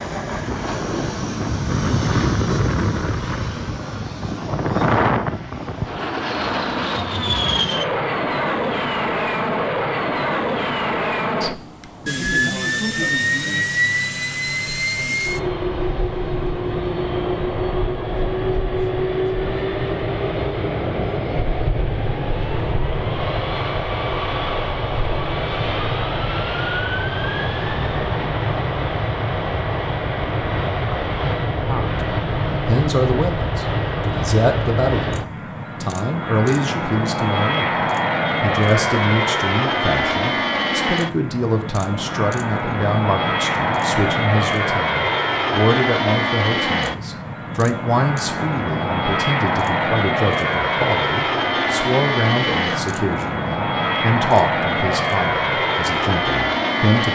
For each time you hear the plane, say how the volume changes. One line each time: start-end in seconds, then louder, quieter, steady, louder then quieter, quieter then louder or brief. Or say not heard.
0.0-57.0 steady.